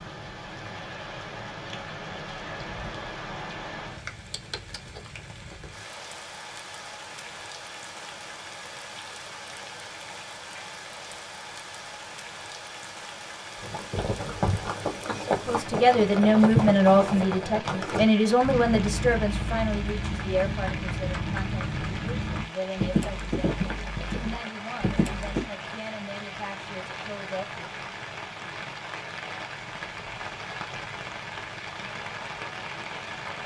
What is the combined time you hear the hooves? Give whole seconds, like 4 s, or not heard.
12 s.